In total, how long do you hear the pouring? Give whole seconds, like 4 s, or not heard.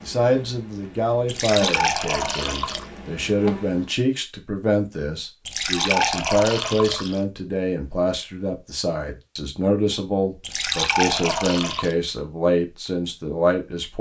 5 s.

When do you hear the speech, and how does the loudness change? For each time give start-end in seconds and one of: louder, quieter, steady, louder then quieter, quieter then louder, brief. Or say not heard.
0.0-13.9 steady.